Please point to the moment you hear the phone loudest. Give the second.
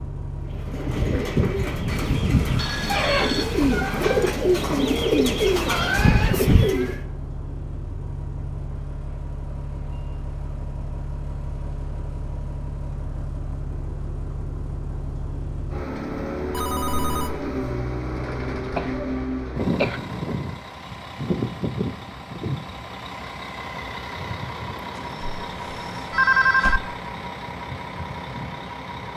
26 s.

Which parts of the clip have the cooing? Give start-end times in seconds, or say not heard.
0.5-7.0.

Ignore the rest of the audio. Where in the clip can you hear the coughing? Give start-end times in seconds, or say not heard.
18.6-20.0.